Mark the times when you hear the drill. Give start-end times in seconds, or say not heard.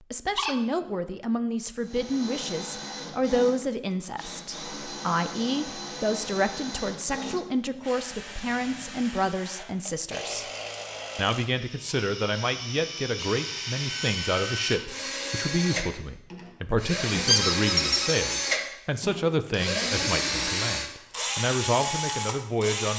1.8-22.9.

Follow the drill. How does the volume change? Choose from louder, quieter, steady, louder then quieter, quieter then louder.
louder.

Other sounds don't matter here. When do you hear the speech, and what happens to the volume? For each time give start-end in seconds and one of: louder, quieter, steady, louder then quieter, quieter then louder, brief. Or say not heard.
0.1-10.4 steady
11.2-22.9 steady.